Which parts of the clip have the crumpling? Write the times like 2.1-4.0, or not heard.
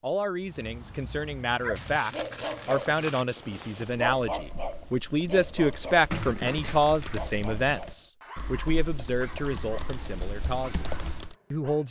1.8-3.2, 6.1-7.3.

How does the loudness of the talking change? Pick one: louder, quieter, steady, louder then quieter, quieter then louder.
louder then quieter.